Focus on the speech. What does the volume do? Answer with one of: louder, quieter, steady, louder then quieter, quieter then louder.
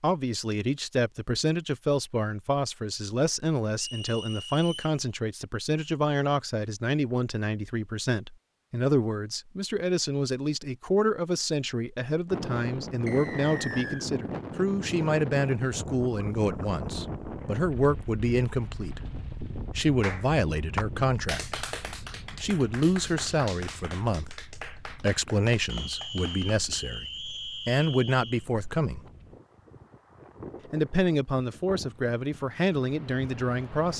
steady.